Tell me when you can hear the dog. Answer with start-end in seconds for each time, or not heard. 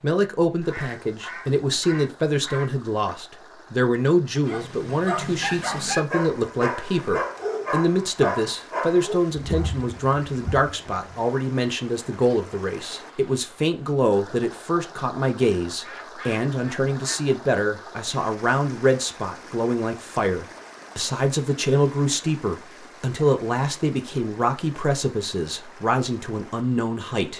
4.4-11.2.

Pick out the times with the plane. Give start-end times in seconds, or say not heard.
not heard.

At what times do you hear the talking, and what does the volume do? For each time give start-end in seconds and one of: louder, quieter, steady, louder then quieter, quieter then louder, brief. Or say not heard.
0.0-27.3 steady.